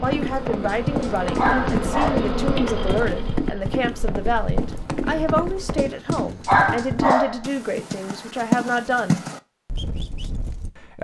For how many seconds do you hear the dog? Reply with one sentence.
The dog can be heard for 3 seconds in total.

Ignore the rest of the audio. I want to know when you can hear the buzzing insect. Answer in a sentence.
The buzzing insect can be heard from 0.0 to 5.8 s.